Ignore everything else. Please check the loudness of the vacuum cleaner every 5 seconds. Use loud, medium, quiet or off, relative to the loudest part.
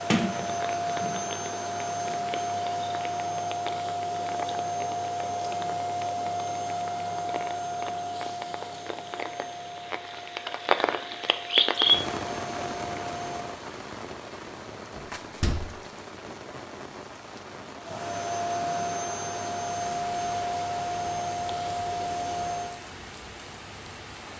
loud, loud, medium, loud, loud.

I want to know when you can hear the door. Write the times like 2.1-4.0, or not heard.
0.1-1.2, 14.9-15.6.